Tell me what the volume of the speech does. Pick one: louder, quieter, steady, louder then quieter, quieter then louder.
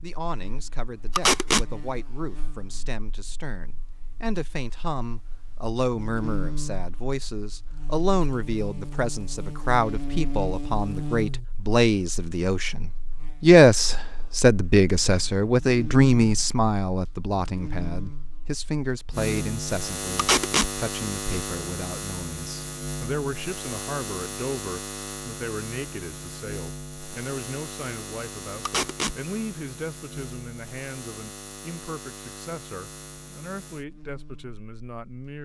louder then quieter.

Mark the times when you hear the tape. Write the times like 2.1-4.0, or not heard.
1.1-1.6, 20.1-20.7, 28.6-29.1.